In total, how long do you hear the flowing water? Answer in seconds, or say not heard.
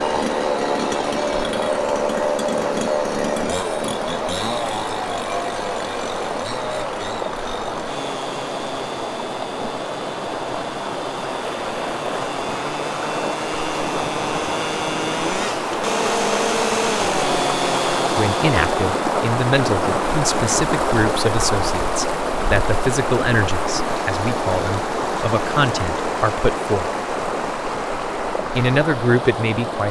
30 s.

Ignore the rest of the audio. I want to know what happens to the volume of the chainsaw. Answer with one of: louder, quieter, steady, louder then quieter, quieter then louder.
quieter then louder.